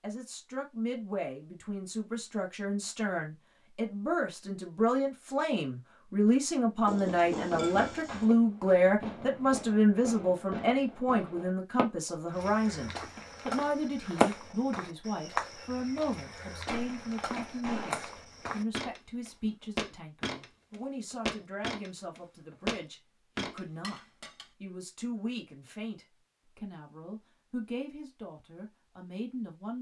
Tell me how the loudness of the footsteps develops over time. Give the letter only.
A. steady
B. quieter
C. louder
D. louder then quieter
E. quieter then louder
C.